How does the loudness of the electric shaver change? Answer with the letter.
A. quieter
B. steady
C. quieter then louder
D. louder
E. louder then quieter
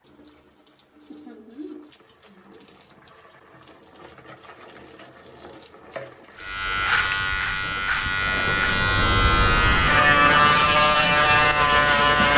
D.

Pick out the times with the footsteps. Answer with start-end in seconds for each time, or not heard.
not heard.